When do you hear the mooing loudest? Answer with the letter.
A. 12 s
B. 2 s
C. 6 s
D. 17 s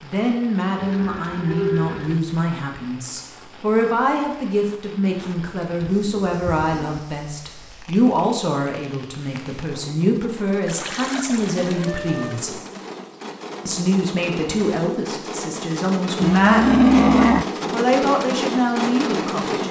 D.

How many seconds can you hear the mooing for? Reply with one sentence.
You can hear the mooing for 6 seconds altogether.